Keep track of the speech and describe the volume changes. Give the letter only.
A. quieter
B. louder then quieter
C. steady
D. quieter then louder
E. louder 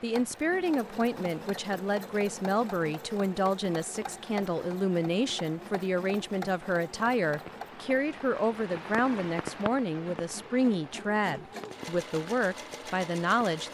C.